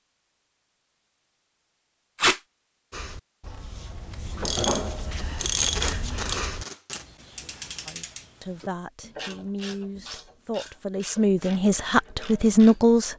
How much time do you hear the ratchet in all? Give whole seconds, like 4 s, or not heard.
10 s.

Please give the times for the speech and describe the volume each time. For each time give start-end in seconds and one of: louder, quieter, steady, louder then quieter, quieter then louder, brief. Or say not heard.
7.8-13.1 louder.